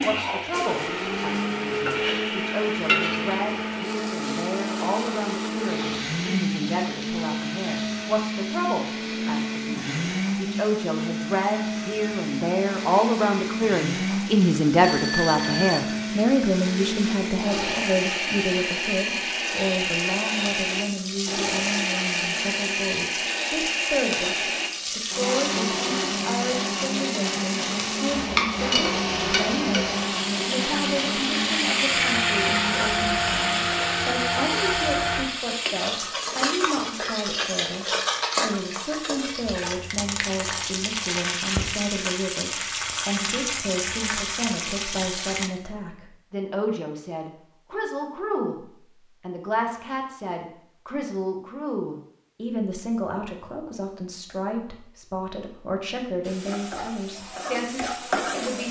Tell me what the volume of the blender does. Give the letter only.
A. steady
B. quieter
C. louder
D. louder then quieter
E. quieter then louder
A.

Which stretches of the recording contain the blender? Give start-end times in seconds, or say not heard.
0.0-35.3.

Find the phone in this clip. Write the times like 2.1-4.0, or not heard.
14.8-15.9.